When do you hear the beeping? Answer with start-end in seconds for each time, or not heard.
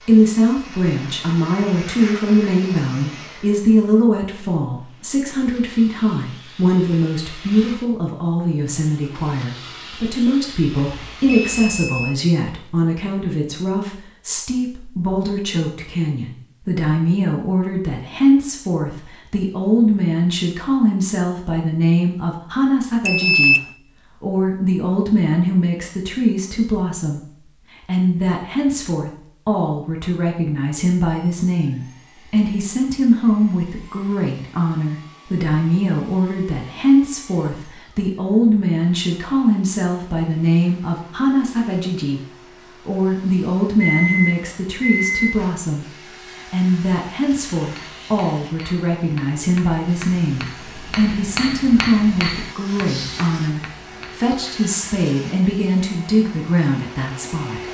10.9-12.2, 23.1-23.6, 43.8-45.4.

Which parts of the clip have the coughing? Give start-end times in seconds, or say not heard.
not heard.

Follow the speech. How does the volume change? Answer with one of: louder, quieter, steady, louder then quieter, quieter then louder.
steady.